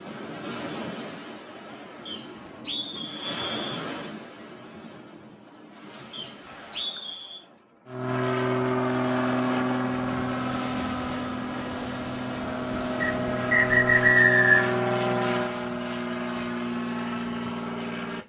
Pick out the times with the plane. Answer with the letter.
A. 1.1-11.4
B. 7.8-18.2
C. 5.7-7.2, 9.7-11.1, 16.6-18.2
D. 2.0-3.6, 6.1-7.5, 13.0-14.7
B.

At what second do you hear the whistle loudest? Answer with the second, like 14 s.
14 s.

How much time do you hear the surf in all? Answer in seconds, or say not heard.
14 s.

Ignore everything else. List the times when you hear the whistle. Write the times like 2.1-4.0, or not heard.
2.0-3.6, 6.1-7.5, 13.0-14.7.